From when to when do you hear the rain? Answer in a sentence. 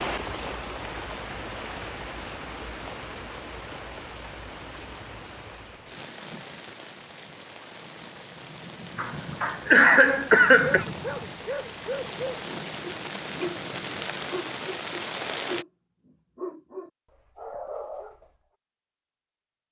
The rain can be heard from 0.0 to 15.7 s.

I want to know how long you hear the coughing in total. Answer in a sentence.
The coughing can be heard for 2 seconds in total.